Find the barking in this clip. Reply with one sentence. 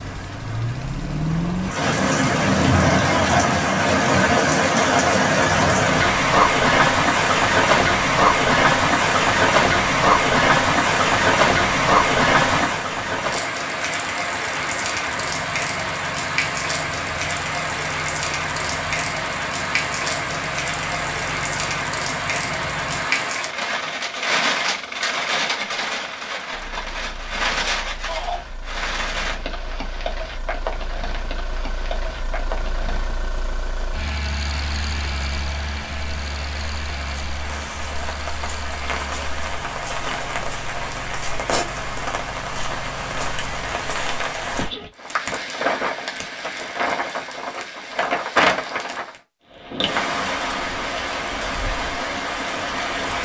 The barking can't be heard in this clip.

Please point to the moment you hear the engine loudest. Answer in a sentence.
The volume of the engine peaks at 1 second.